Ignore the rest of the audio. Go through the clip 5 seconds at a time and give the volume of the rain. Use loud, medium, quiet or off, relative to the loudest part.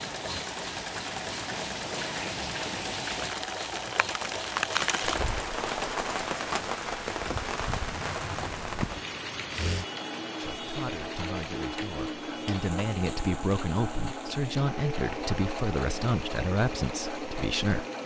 loud, loud, medium, quiet.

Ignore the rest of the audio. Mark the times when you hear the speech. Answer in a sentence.
You can hear the speech from 10.3 to 17.9 s.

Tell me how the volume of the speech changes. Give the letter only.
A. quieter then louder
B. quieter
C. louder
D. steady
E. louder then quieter
C.